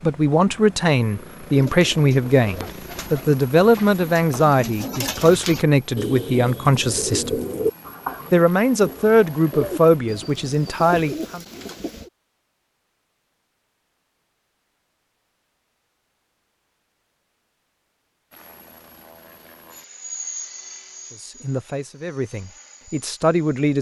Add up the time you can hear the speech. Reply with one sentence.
You can hear the speech for 13 seconds altogether.